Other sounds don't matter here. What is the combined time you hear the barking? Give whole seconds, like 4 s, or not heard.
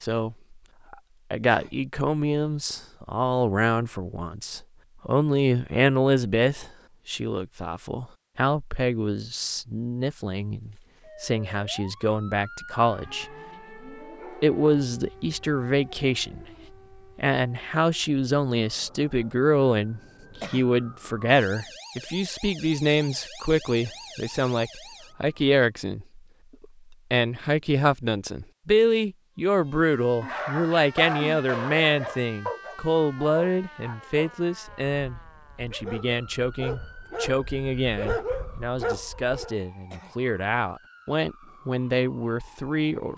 9 s.